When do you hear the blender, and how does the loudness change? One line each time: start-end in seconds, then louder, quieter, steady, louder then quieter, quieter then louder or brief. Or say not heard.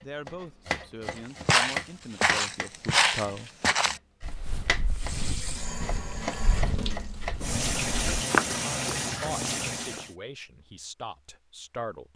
not heard.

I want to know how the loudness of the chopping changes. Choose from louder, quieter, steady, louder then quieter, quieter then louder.
quieter then louder.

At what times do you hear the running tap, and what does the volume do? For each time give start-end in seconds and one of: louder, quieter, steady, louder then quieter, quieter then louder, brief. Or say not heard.
4.9-10.2 louder.